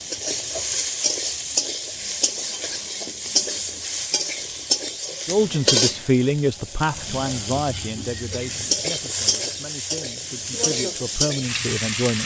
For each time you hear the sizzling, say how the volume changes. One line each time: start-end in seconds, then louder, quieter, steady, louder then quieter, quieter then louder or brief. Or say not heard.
0.0-12.2 steady.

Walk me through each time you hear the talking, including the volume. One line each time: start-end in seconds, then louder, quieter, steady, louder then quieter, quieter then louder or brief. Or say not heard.
5.2-12.2 quieter then louder.